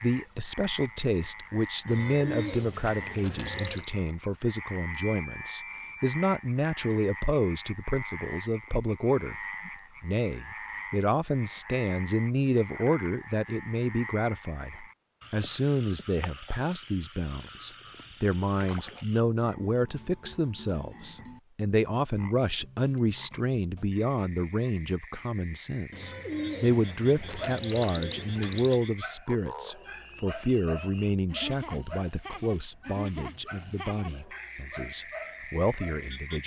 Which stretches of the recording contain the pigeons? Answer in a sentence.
You can hear the pigeons from 1.9 to 3.9 s and from 25.9 to 28.8 s.